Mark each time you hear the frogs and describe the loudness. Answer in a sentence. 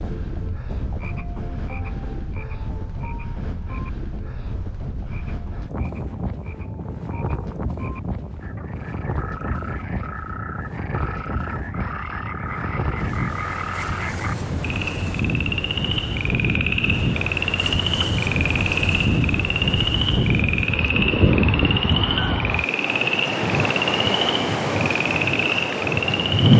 You can hear the frogs from 0.0 to 26.5 s, getting louder.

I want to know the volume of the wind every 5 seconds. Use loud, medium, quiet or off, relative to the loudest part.
quiet, quiet, quiet, medium, medium, loud.